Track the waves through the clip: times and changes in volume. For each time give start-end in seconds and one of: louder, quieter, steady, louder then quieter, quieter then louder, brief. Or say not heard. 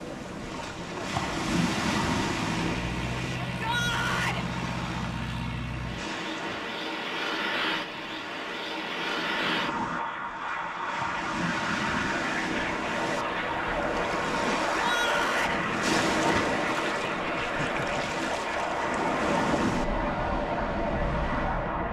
0.0-21.8 quieter then louder.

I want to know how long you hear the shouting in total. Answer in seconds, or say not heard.
2 s.